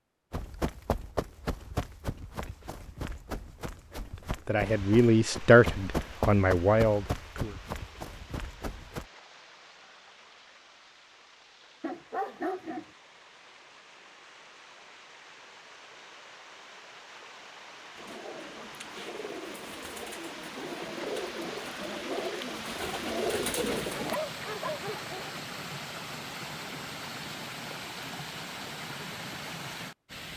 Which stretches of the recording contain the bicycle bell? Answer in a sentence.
The bicycle bell can't be heard in this clip.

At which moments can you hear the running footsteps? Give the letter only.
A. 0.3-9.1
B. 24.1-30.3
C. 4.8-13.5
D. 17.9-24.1
A.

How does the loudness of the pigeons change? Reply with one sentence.
The volume of the pigeons goes up.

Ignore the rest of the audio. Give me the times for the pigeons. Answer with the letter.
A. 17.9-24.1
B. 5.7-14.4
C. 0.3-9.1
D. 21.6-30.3
A.